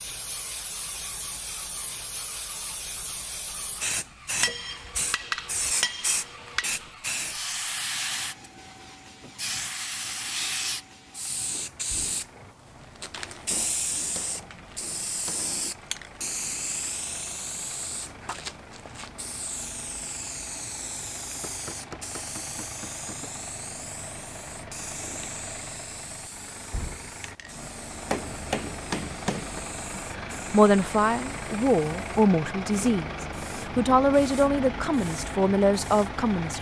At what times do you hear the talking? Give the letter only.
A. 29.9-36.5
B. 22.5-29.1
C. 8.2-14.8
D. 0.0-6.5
A.